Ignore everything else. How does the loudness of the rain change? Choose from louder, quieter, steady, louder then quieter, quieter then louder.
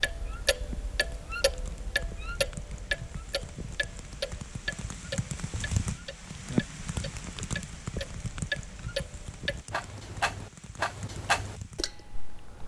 louder then quieter.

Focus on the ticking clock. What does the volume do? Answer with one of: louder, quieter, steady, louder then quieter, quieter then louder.
quieter then louder.